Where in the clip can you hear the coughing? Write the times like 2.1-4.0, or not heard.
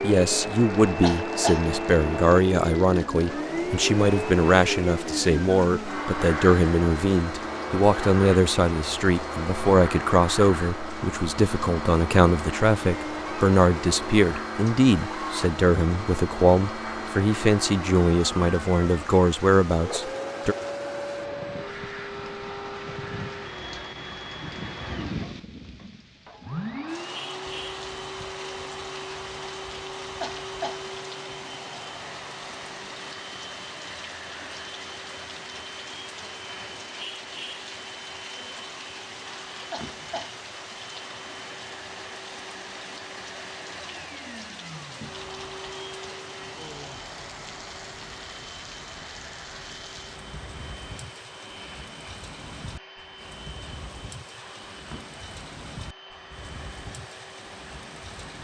1.0-1.6, 30.2-30.8, 39.7-40.4.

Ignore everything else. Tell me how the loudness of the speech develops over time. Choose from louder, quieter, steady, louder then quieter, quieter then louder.
steady.